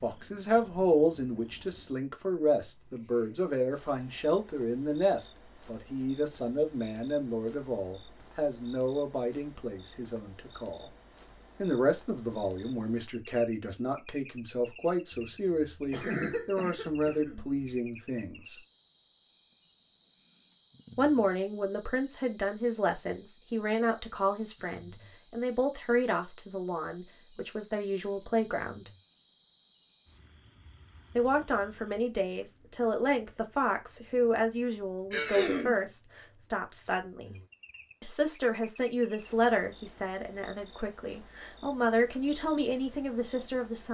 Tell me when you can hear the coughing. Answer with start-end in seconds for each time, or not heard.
15.1-17.6, 35.1-35.8.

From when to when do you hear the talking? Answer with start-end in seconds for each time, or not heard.
0.0-10.9, 11.6-18.6, 20.9-28.9, 31.1-37.4, 38.0-43.8.